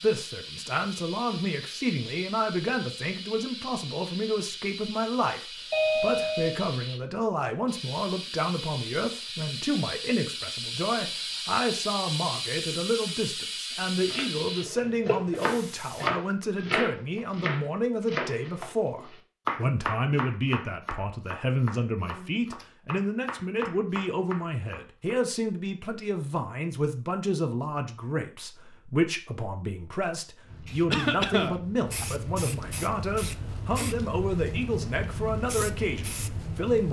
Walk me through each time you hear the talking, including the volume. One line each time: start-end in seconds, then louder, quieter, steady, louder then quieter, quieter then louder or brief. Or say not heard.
0.0-36.8 steady.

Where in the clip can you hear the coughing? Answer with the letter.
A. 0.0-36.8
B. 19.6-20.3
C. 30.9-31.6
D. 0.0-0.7
C.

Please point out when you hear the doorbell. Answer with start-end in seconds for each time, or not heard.
5.7-6.5.